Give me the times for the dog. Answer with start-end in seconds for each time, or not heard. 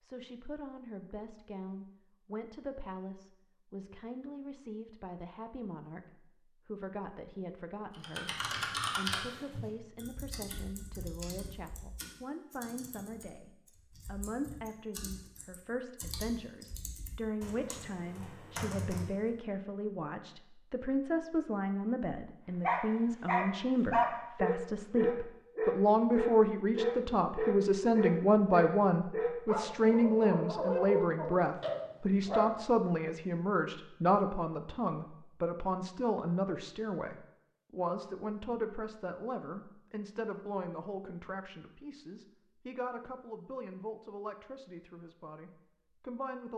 22.6-32.5.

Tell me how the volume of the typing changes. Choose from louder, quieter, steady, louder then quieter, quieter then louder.
quieter then louder.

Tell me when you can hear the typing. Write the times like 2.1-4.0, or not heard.
7.9-19.4.